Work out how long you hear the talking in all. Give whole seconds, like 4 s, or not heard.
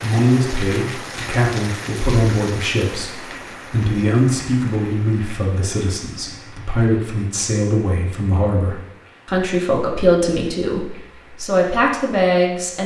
13 s.